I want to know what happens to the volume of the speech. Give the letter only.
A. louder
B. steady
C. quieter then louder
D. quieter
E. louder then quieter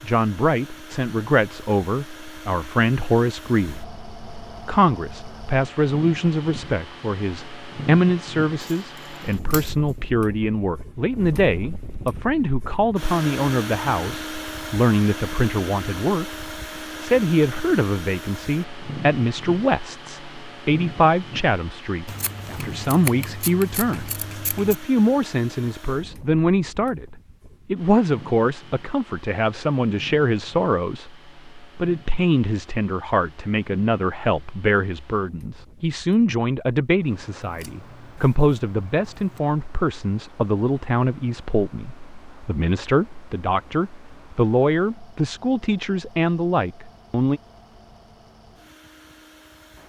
B.